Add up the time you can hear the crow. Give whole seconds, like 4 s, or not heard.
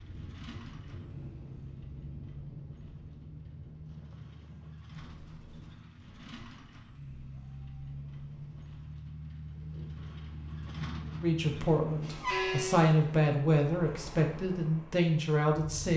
not heard.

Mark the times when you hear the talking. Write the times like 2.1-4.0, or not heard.
11.2-15.9.